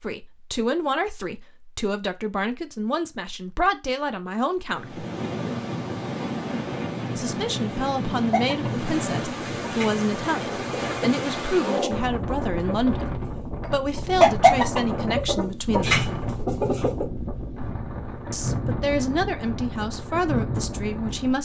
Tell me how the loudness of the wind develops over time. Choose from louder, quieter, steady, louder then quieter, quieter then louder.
steady.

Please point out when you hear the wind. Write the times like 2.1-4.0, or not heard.
4.7-21.3.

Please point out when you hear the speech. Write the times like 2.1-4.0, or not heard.
0.0-5.0, 7.2-16.0, 18.3-21.3.